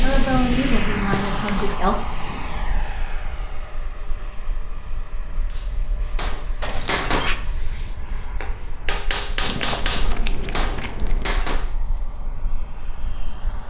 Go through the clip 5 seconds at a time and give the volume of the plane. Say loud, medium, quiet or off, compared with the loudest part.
loud, quiet, quiet.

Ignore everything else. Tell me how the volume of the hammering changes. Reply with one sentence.
The volume of the hammering stays about the same.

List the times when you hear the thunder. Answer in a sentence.
The thunder can be heard from 0.2 to 2.9 s.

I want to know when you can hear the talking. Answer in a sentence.
The talking can be heard from 0.0 to 1.9 s.